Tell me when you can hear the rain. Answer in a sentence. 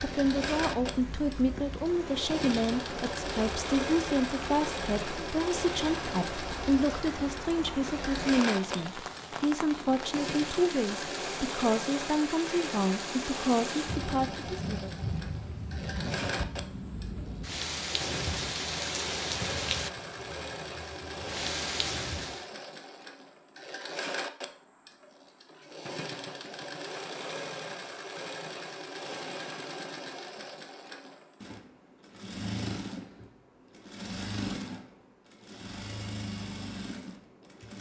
The rain can be heard from 0.0 to 22.5 s.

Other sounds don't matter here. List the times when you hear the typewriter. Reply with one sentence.
The typewriter can't be heard in this clip.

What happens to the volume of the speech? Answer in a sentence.
The loudness of the speech stays about the same.